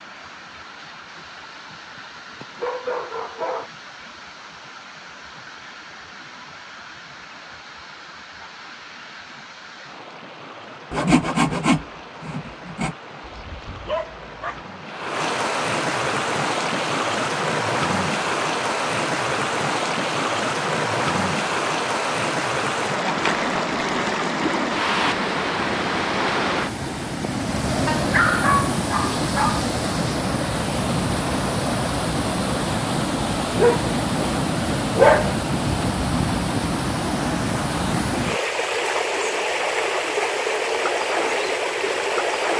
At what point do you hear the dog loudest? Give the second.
35 s.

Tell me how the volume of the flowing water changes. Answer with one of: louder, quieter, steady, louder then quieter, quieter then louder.
louder.